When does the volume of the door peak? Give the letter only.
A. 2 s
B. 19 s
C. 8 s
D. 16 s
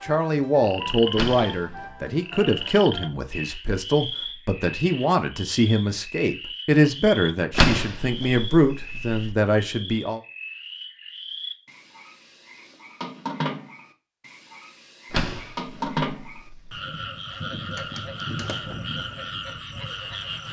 C.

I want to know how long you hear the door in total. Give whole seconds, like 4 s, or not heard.
4 s.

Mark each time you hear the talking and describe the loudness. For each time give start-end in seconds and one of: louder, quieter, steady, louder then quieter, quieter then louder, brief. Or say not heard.
0.0-10.2 steady.